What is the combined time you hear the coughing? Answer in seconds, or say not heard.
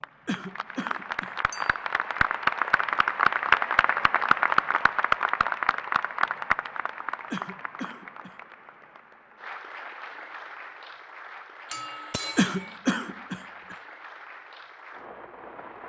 4 s.